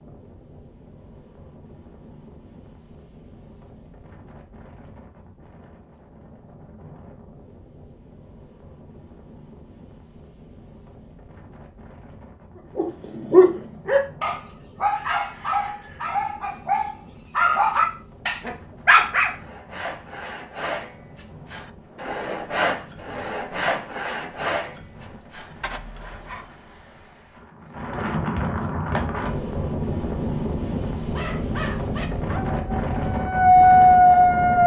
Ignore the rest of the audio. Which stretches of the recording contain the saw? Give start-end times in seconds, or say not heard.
19.3-26.6.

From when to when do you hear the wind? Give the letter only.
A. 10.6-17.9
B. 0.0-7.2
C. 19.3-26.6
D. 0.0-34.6
D.